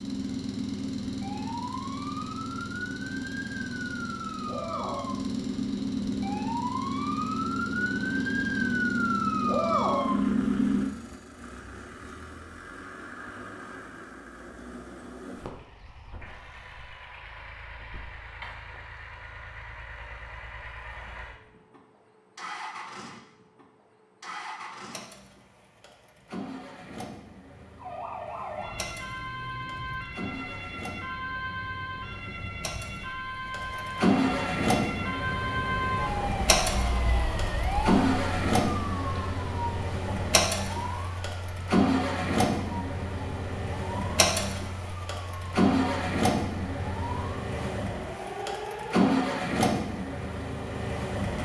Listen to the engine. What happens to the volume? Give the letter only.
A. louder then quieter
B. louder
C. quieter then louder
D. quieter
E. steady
B.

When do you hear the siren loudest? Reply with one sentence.
The loudest moment of the siren is at 10 seconds.